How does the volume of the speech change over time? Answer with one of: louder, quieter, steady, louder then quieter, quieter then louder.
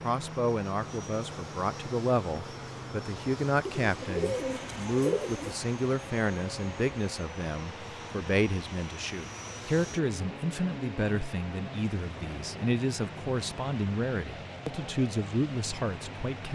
steady.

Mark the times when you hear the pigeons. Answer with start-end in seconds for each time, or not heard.
3.6-5.5.